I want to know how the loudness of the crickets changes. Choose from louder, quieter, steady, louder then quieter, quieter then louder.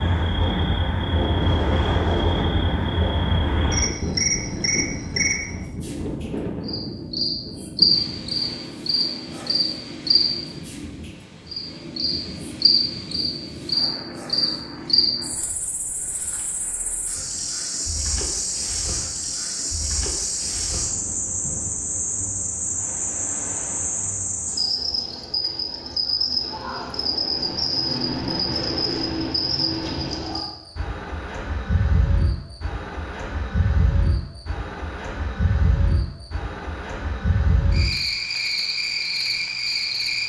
steady.